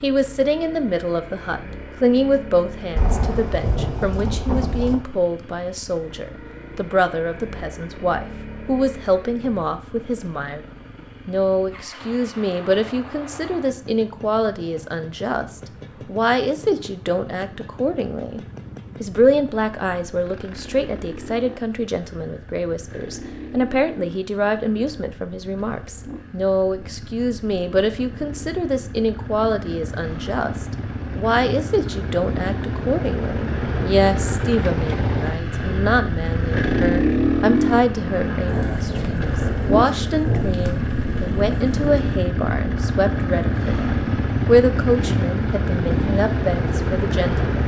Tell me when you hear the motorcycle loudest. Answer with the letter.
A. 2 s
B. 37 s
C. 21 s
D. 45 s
B.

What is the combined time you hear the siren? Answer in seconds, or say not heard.
not heard.